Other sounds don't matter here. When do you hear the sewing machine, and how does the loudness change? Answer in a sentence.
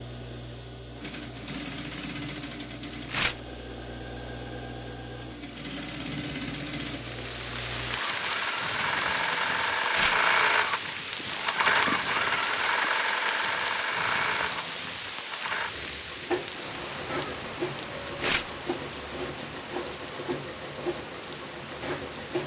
You can hear the sewing machine from 0.0 to 22.4 s, getting louder then quieter.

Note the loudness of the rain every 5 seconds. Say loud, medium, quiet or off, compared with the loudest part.
off, loud, loud, medium, medium.